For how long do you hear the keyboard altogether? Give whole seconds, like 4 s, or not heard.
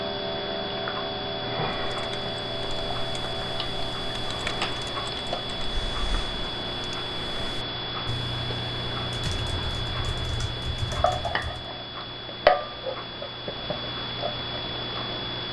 10 s.